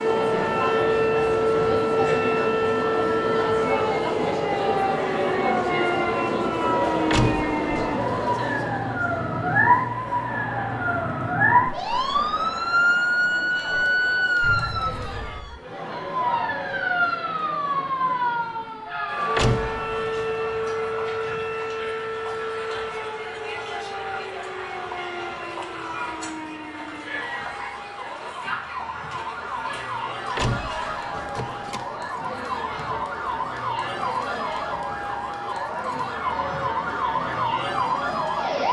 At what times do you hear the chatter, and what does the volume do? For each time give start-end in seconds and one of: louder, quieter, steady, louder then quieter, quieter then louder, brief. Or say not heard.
0.0-38.6 quieter.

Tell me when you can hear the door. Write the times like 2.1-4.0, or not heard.
7.1-7.5, 19.4-20.2, 30.4-31.9.